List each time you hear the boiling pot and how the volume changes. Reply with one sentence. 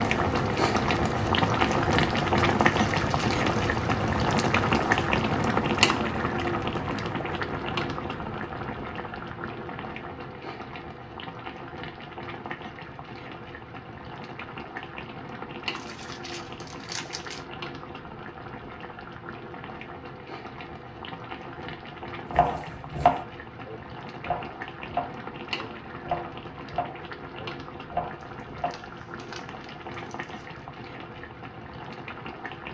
The boiling pot can be heard from 0.0 to 32.7 s, getting quieter.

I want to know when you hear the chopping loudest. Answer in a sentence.
The volume of the chopping peaks at 23 seconds.